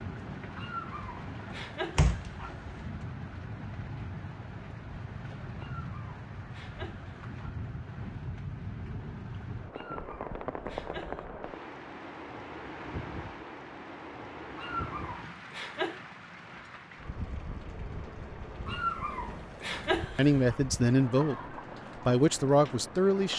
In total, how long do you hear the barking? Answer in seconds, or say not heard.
9 s.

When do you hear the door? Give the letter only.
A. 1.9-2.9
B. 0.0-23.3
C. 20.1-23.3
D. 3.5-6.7
A.